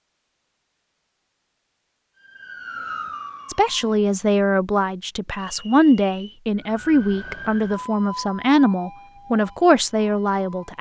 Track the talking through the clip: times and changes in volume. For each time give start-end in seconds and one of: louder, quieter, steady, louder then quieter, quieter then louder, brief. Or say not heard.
3.5-10.7 steady.